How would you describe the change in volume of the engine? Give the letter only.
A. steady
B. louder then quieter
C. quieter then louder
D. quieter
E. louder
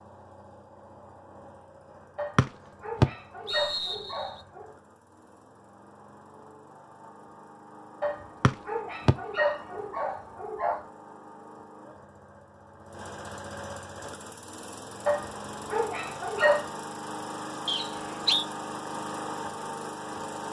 E.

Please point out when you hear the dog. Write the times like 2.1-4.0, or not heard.
2.1-4.7, 8.0-10.8, 15.1-16.6.